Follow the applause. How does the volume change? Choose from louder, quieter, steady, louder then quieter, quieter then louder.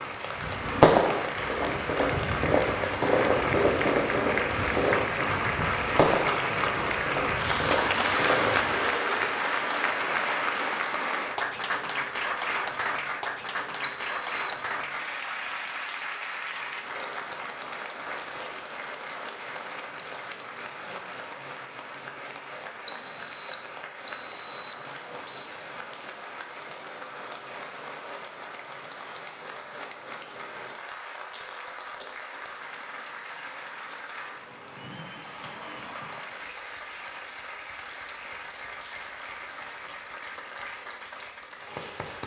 quieter.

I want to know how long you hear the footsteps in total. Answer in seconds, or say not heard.
not heard.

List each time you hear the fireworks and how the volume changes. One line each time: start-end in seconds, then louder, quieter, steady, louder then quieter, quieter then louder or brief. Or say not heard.
0.3-8.9 quieter.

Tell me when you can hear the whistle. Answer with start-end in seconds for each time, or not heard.
13.8-14.7, 22.9-25.6.